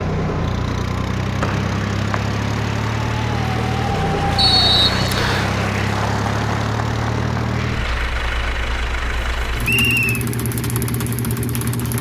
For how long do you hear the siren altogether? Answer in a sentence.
You can't hear the siren here.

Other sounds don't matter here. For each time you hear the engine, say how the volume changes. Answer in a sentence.
The engine can be heard from 0.0 to 11.9 s, at a steady volume.